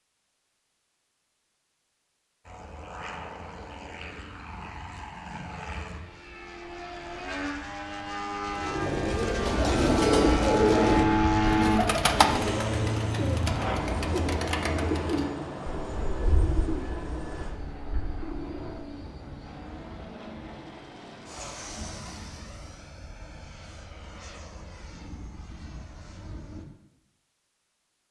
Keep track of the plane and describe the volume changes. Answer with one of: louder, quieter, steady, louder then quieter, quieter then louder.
louder then quieter.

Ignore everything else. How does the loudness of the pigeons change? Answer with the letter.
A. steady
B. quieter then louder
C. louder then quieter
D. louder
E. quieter
E.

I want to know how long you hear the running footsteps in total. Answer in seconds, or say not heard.
not heard.